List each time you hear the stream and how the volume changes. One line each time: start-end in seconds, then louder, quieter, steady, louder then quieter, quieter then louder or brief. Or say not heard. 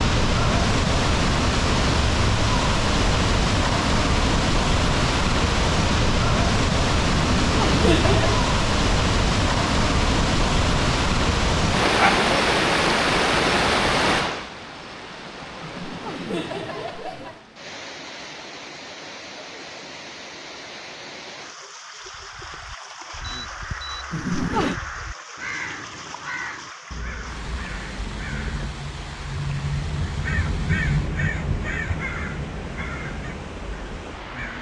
0.0-34.5 quieter.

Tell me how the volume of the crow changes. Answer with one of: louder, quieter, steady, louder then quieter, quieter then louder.
louder then quieter.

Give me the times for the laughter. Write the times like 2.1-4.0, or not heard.
7.4-8.4, 15.6-17.4, 24.1-24.8.